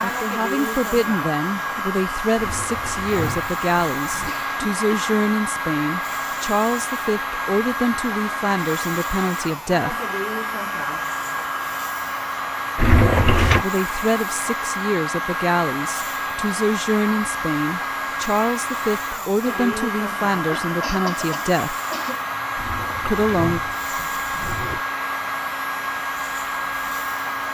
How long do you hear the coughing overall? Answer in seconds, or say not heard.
3 s.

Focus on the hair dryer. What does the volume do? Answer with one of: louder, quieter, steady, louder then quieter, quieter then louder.
steady.